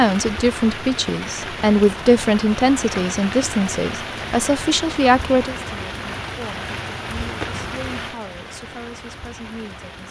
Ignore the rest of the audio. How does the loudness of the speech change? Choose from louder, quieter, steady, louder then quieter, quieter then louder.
quieter.